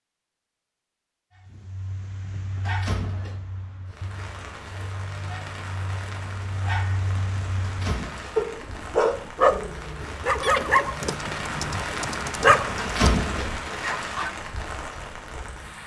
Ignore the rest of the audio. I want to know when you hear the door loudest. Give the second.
13 s.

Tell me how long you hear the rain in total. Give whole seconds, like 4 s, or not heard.
12 s.